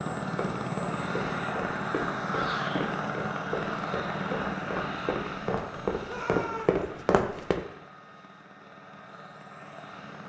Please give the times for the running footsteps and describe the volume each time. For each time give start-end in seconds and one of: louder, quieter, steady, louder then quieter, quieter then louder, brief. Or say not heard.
0.2-7.6 louder.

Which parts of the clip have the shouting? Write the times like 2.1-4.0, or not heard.
2.3-2.9, 6.0-6.8.